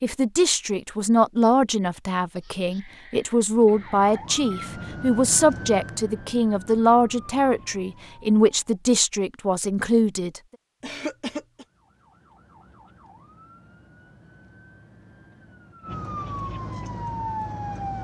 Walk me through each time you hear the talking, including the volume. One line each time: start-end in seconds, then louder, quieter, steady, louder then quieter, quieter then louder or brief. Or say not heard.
0.0-10.4 steady.